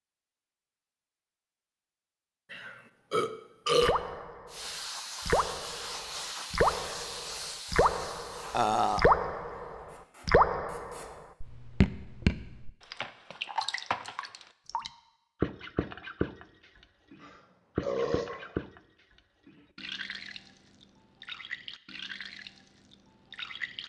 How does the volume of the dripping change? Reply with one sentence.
The volume of the dripping goes down.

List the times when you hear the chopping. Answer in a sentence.
The chopping can't be heard in this clip.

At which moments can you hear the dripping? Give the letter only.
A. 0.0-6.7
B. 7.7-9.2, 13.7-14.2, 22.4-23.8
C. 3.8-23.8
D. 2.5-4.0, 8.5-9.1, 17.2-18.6
C.